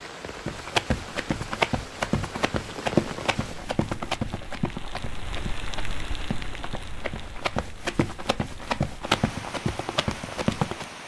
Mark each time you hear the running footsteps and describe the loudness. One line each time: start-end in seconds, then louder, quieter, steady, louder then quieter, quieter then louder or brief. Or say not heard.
0.5-10.8 quieter then louder.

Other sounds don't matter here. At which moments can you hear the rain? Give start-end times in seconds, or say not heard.
0.0-11.0.